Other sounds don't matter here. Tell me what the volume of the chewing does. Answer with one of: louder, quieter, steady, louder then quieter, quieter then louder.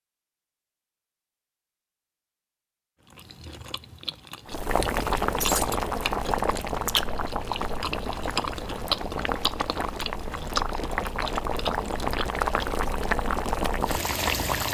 louder.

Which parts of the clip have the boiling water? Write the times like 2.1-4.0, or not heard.
4.5-14.6.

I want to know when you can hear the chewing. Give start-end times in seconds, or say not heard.
3.0-12.7.